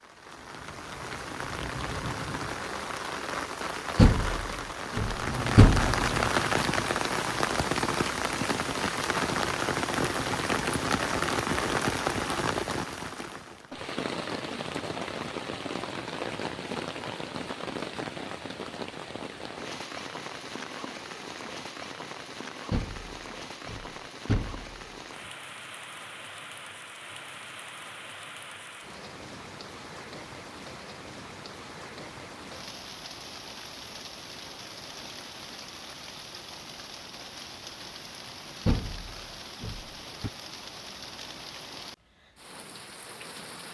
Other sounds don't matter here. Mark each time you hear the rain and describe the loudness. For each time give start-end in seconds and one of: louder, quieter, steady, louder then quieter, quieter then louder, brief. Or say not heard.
0.0-43.6 quieter.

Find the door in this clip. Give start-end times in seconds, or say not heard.
4.0-5.8, 22.7-24.8, 38.6-40.3.